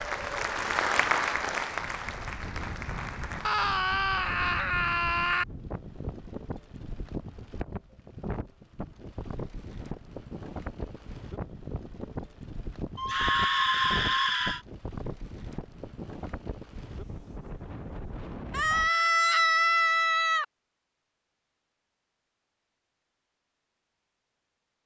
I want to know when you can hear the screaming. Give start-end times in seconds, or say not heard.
3.4-5.5, 12.9-14.6, 18.5-20.4.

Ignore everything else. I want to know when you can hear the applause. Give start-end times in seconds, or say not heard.
0.0-3.5.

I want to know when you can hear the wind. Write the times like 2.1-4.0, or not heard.
0.0-18.9.